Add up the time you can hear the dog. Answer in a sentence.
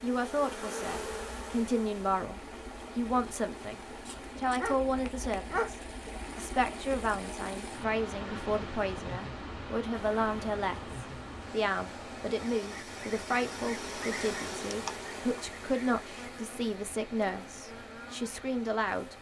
The dog can be heard for 2 seconds in total.